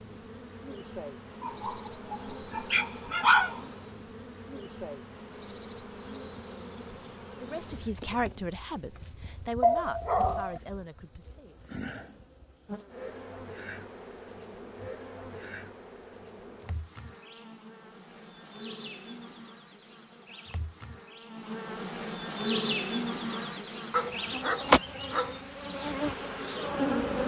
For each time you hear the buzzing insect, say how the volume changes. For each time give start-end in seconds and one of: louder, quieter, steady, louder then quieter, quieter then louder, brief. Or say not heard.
0.0-27.2 louder.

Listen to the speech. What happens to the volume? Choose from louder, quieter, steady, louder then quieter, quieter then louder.
quieter.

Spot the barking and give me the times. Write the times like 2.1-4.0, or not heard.
1.4-3.6, 9.6-10.6, 23.9-25.4.